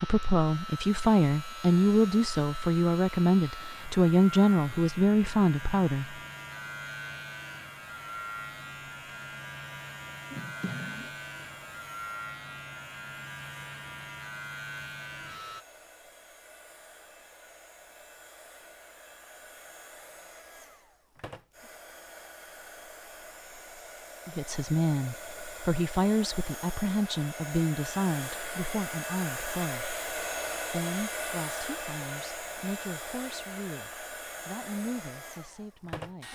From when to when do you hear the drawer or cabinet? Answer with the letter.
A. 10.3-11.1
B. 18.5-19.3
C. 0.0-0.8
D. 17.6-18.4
A.